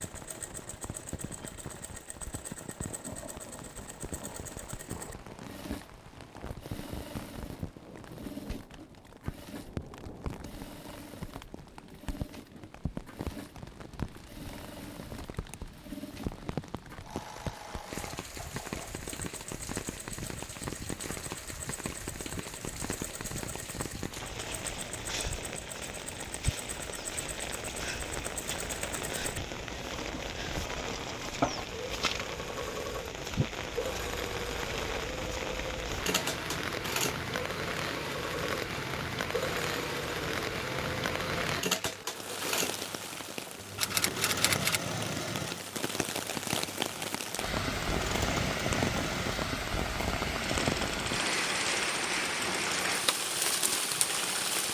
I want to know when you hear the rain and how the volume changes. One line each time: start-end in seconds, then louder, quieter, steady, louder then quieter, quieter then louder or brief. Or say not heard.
0.0-54.7 louder.